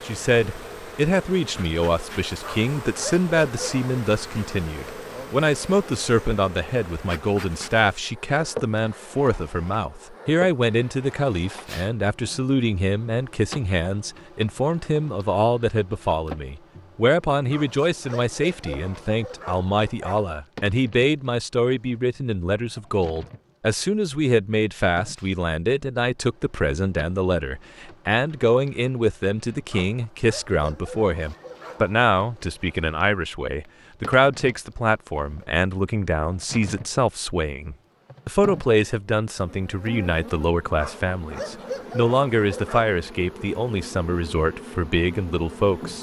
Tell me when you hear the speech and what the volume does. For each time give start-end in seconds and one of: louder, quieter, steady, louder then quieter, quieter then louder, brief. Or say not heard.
0.0-45.9 steady.